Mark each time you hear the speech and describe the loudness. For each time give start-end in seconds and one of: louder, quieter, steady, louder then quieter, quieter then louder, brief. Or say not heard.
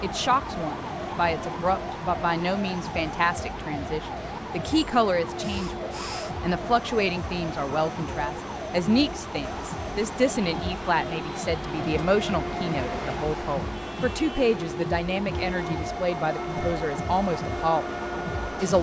0.0-18.7 steady.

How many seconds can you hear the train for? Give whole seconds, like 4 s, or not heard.
19 s.